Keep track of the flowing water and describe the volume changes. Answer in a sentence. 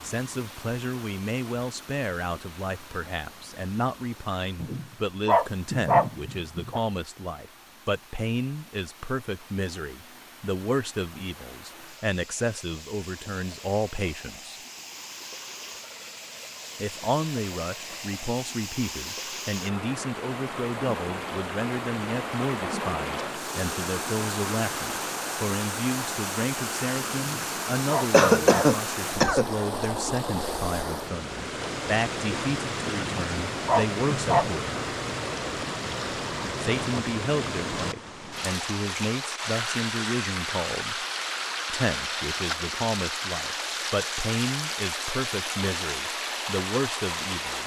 The volume of the flowing water goes up.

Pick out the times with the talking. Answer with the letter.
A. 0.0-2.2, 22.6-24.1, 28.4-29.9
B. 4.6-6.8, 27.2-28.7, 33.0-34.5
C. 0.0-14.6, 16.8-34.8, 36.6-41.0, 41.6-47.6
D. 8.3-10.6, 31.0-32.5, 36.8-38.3
C.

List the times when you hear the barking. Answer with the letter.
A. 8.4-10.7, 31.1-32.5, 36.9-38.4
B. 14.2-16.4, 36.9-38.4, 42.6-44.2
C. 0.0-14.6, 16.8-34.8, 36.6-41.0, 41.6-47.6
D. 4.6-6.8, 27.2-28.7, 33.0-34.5
D.